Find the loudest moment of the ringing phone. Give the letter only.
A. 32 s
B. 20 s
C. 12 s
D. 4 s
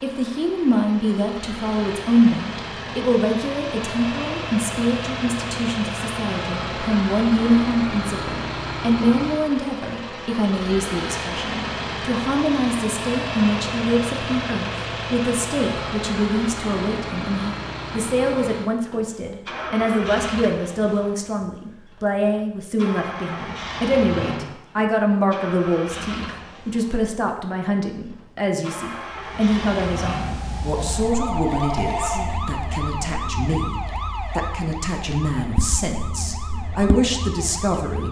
A.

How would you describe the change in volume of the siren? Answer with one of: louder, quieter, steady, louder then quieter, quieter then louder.
steady.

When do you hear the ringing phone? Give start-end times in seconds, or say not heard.
30.8-32.4.